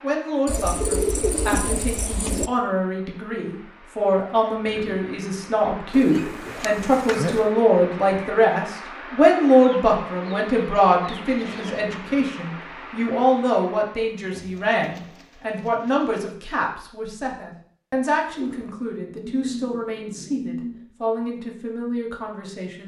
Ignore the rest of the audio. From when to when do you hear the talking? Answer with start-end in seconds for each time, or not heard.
0.0-22.8.